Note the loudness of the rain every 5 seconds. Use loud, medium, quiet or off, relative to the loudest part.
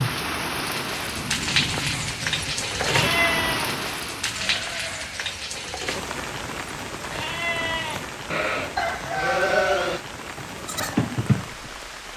loud, medium, medium.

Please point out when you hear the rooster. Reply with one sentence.
The rooster can be heard from 8.8 to 9.9 s.